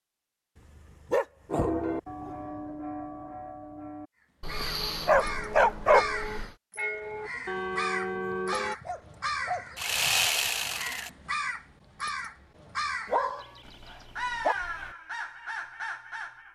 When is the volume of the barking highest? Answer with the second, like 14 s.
6 s.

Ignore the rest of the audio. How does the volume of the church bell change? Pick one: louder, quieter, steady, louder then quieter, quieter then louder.
quieter then louder.